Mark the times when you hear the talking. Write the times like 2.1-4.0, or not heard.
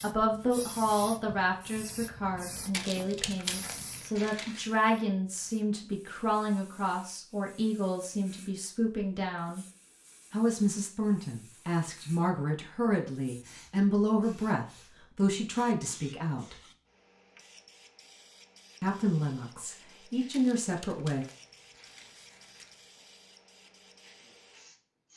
0.0-9.7, 10.3-16.6, 18.8-21.2.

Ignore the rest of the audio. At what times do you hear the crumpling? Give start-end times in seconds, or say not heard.
2.7-4.7, 20.3-22.9.